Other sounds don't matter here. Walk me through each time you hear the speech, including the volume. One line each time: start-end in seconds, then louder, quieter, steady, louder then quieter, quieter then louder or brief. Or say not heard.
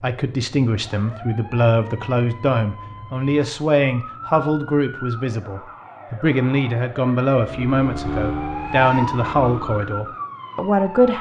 0.0-11.1 steady.